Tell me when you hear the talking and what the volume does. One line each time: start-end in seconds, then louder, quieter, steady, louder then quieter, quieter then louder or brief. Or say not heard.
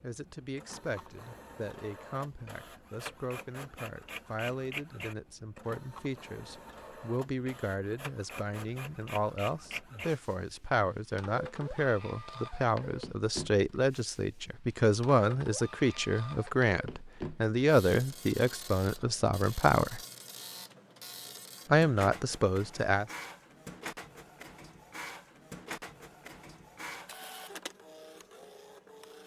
0.0-20.0 louder
21.6-23.1 brief.